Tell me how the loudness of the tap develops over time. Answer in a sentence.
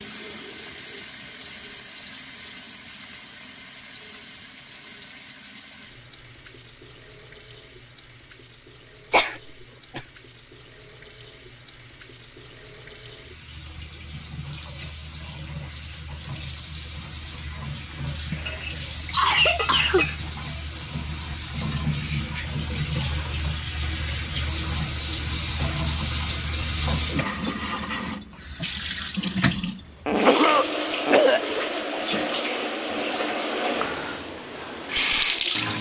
The loudness of the tap goes down, then up.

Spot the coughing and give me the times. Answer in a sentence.
The coughing can be heard from 9.1 to 10.1 s, from 18.3 to 20.2 s and from 30.1 to 31.4 s.